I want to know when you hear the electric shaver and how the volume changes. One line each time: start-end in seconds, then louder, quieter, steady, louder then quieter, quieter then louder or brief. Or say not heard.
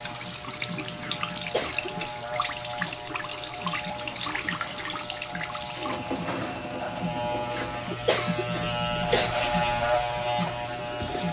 0.0-11.2 louder.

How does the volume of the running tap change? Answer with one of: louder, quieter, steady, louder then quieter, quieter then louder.
quieter.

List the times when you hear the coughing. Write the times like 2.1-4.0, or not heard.
1.0-2.1, 7.5-9.6.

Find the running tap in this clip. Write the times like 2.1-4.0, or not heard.
0.0-11.2.